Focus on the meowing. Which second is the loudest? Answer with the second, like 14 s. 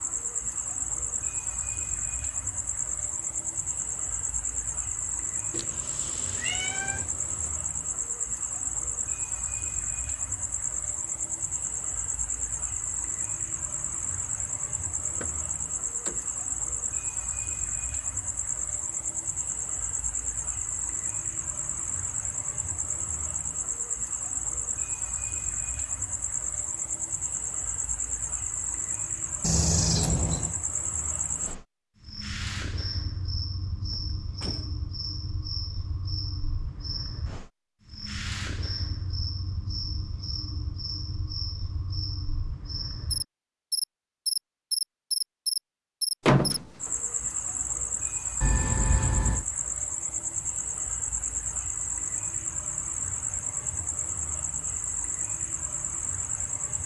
30 s.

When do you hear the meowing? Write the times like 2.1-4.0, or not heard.
5.5-7.5, 29.4-30.6, 48.4-49.5.